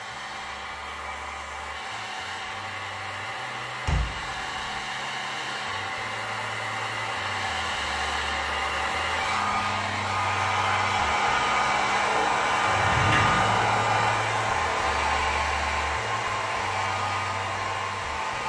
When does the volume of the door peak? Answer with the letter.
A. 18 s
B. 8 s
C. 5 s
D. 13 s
D.